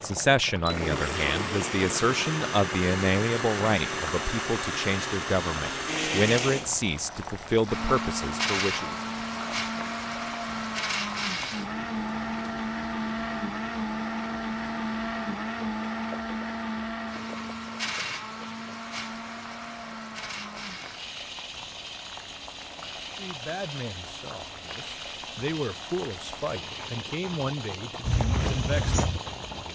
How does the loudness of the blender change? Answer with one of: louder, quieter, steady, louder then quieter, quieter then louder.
quieter.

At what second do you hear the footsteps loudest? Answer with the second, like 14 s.
28 s.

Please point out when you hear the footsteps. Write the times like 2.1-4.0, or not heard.
28.0-29.7.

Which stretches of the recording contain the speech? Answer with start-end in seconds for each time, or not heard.
0.0-8.9, 23.1-29.0.